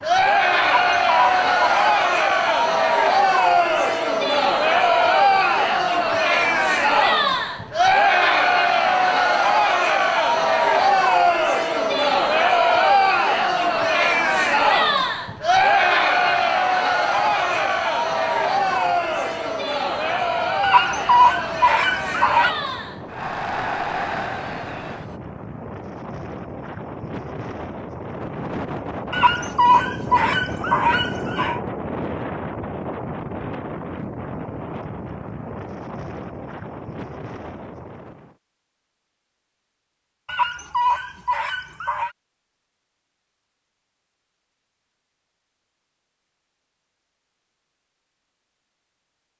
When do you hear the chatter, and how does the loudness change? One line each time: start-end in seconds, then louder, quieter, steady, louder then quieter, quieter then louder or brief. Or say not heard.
0.0-25.2 quieter.